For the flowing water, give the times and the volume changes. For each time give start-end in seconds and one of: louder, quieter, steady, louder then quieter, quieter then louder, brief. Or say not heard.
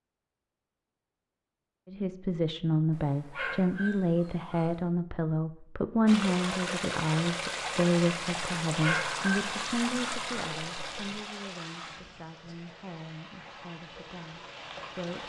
6.0-15.2 quieter.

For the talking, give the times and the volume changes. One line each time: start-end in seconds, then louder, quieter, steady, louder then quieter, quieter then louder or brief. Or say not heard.
1.9-15.2 quieter.